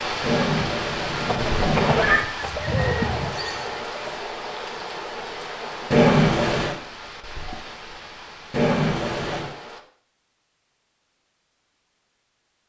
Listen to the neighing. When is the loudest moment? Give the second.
6 s.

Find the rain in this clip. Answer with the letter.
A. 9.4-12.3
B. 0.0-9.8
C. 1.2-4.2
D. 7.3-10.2
B.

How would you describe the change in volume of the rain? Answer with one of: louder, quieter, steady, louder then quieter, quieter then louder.
quieter.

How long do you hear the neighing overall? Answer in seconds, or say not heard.
4 s.